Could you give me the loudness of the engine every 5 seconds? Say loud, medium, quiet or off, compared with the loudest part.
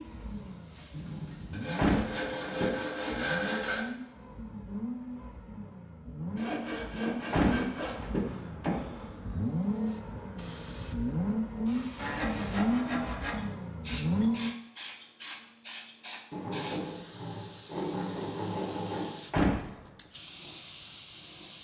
medium, medium, loud, off, off.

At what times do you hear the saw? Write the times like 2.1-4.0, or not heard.
0.9-3.9, 6.3-8.1, 11.9-13.4, 16.3-19.2.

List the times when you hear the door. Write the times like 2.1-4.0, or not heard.
1.8-2.8, 7.3-9.4, 19.3-19.8.